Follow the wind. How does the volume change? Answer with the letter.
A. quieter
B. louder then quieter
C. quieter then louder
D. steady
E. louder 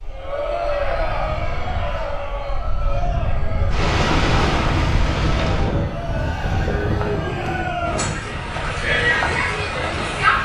B.